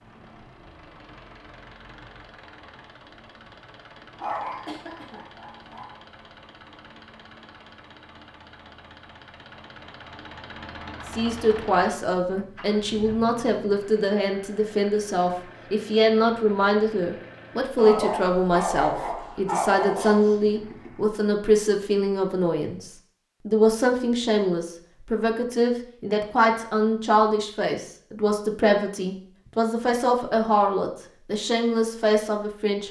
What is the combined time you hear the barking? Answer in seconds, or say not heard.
4 s.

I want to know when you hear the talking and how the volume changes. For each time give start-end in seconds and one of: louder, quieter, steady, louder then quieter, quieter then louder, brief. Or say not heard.
11.1-32.8 steady.